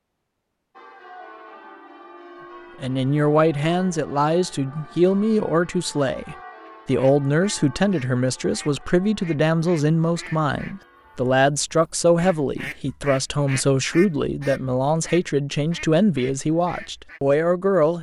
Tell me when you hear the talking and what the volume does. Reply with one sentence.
You can hear the talking from 2.8 to 17.9 s, at a steady volume.